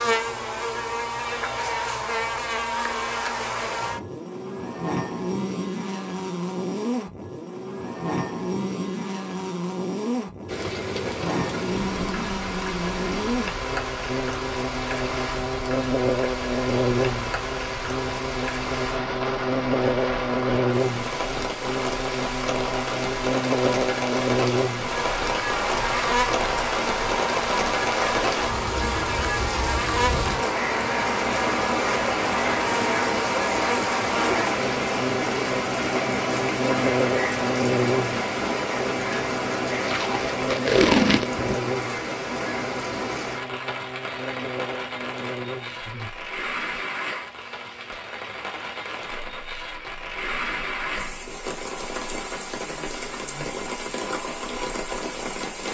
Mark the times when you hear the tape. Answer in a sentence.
The tape can be heard from 39.9 to 41.4 s.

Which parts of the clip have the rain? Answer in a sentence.
You can hear the rain from 10.4 to 55.6 s.